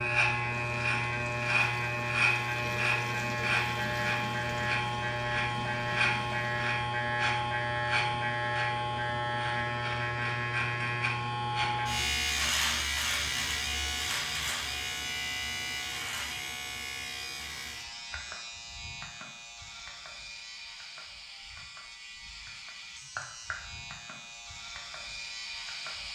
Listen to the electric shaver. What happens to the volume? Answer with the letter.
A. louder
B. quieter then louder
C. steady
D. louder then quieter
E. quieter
E.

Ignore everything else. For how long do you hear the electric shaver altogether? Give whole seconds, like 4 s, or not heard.
26 s.